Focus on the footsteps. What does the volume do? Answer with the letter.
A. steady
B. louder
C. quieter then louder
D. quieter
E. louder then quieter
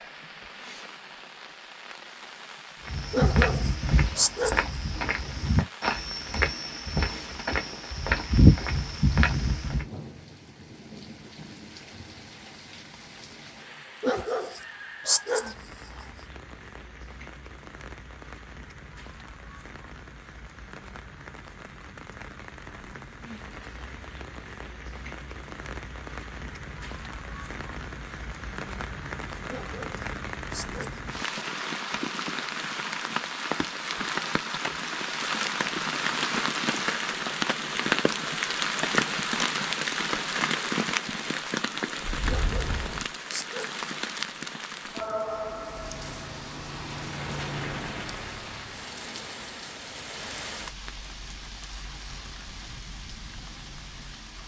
B.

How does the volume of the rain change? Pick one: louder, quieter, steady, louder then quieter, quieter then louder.
louder then quieter.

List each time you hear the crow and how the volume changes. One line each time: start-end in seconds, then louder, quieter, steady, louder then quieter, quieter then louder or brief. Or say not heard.
not heard.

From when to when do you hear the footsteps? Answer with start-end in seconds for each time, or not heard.
2.9-9.8.